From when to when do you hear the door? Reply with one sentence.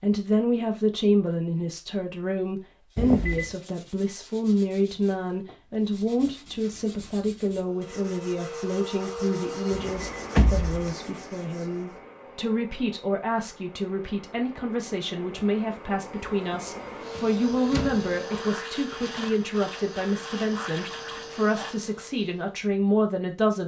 The door can be heard from 3.0 to 3.5 s, from 9.7 to 10.9 s and from 17.1 to 18.1 s.